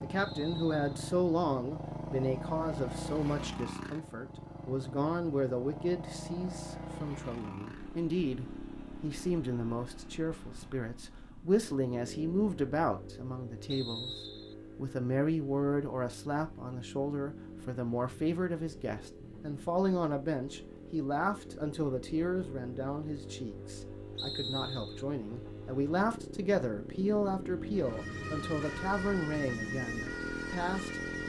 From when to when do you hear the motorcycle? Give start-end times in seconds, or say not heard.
0.0-31.2.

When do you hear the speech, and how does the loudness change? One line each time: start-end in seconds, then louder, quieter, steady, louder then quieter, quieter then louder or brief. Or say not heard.
0.0-31.2 steady.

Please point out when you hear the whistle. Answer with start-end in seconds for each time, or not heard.
0.1-0.9, 13.7-14.6, 24.1-25.1.